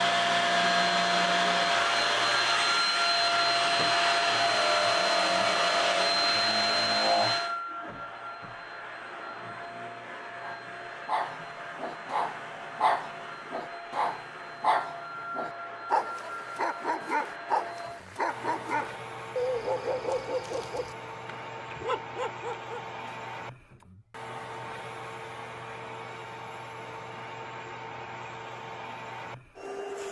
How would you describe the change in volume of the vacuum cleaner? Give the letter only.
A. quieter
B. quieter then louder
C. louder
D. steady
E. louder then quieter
A.